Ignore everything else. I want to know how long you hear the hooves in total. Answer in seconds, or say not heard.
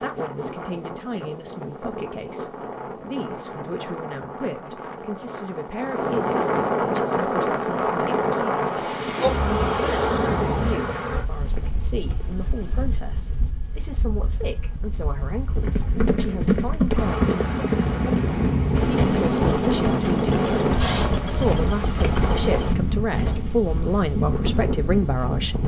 8 s.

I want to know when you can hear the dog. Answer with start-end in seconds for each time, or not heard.
not heard.